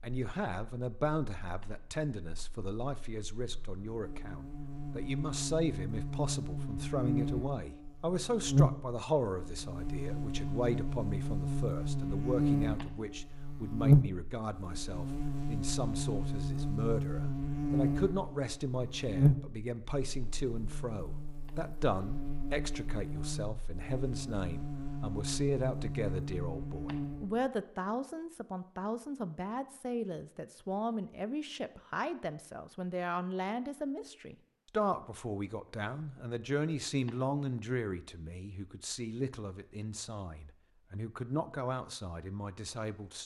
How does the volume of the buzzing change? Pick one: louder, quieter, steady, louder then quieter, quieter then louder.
louder then quieter.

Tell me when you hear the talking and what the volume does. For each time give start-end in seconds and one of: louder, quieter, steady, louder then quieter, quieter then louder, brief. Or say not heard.
0.0-43.2 steady.